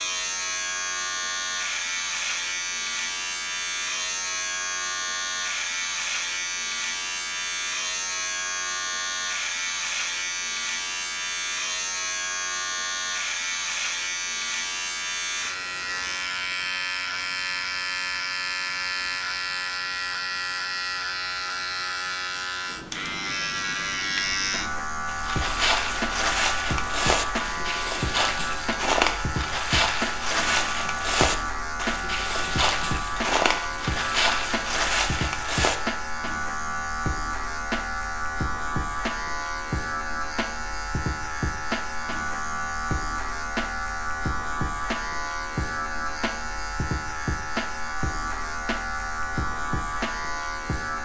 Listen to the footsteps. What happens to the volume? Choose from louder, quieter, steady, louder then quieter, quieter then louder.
steady.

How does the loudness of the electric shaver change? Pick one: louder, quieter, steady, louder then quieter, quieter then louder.
steady.